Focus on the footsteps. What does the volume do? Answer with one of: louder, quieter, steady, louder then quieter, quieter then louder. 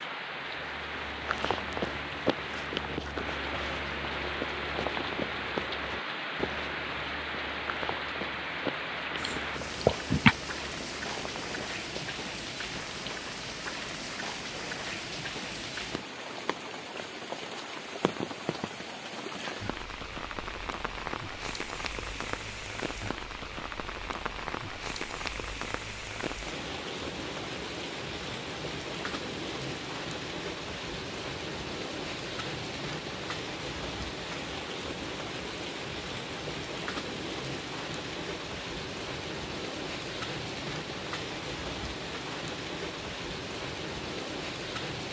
quieter.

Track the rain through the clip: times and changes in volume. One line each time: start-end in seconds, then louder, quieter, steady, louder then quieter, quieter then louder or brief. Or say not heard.
0.0-45.0 steady.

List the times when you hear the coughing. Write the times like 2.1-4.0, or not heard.
9.2-10.3.